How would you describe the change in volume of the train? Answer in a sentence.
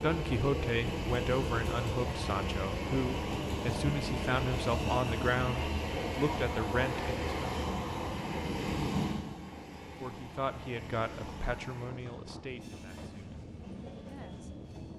The loudness of the train goes down.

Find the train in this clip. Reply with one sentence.
You can hear the train from 0.0 to 14.9 s.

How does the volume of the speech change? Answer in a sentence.
The loudness of the speech goes down.